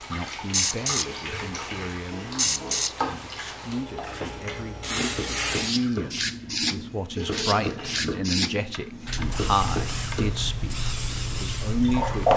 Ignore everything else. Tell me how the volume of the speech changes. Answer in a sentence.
The volume of the speech goes up.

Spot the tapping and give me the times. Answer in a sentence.
The tapping can be heard from 8.7 to 10.2 s.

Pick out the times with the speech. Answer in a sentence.
You can hear the speech from 0.1 to 12.3 s.